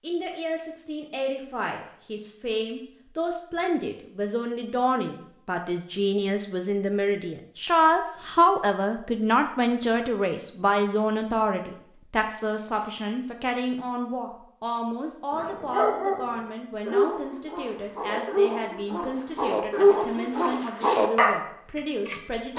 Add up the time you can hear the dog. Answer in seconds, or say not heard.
7 s.